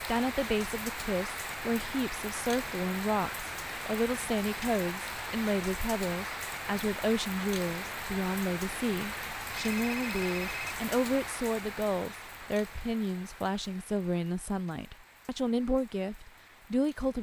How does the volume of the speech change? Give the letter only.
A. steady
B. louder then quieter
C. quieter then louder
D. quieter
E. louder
A.